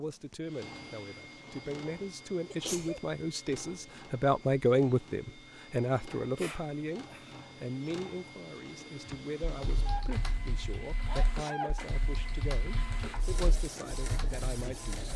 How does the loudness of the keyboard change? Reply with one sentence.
The volume of the keyboard goes down, then up.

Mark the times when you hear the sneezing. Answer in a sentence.
You can hear the sneezing from 2.5 to 3.0 s, from 6.3 to 7.4 s and from 11.1 to 11.8 s.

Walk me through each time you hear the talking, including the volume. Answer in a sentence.
You can hear the talking from 0.0 to 15.1 s, getting louder then quieter.